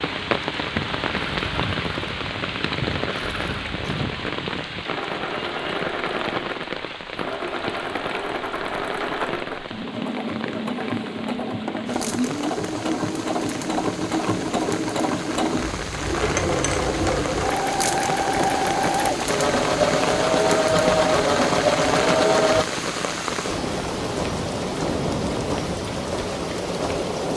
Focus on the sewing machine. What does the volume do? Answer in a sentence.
The loudness of the sewing machine goes up.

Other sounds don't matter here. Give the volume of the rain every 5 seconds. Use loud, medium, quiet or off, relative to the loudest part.
loud, medium, medium, loud, loud, loud.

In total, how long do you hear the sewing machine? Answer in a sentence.
The sewing machine can be heard for 23 seconds in total.